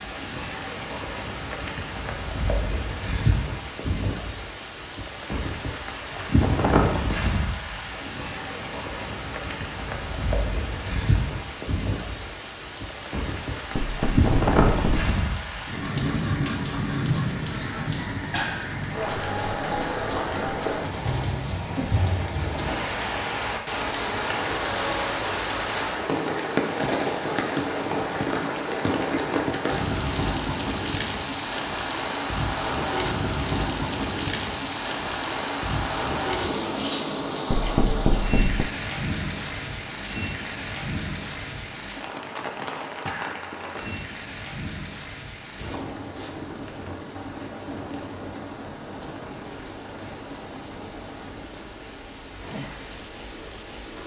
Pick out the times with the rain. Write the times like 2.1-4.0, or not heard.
0.0-54.0.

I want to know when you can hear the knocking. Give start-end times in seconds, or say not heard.
13.8-15.1, 37.5-38.7.